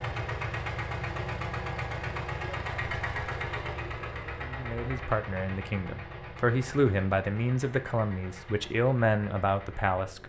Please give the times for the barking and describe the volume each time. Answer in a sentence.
The barking can't be heard in this clip.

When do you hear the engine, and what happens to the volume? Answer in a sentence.
You can hear the engine from 0.0 to 10.2 s, getting quieter.